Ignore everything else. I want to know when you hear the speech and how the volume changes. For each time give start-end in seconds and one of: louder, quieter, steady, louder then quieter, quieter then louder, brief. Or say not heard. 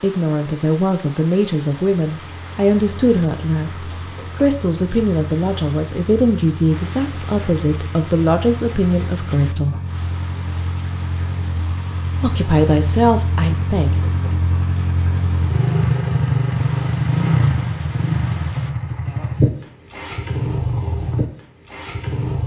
0.0-9.8 steady
12.2-13.9 brief.